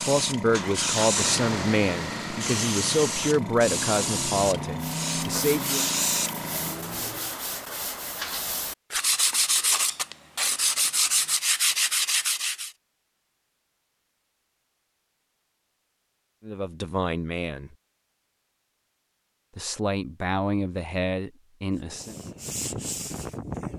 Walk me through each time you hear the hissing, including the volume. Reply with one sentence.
You can hear the hissing from 0.0 to 6.8 s, at a steady volume.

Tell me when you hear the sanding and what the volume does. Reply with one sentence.
The sanding can be heard from 4.8 to 12.7 s, getting louder; and briefly from 21.8 to 23.7 s.